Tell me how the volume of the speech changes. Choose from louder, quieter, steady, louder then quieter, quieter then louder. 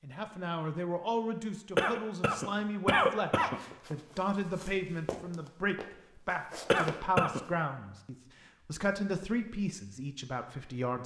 steady.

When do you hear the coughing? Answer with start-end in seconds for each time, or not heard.
1.8-3.6, 6.7-7.5.